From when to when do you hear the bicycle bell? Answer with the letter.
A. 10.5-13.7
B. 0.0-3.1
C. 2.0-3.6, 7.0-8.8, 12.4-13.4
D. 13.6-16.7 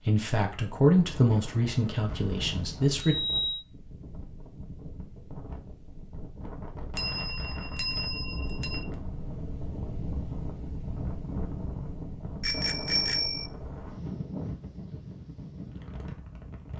C.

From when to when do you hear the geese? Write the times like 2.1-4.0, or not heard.
not heard.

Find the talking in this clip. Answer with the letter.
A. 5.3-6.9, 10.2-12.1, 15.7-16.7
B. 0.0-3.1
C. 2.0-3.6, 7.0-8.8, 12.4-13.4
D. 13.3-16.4
B.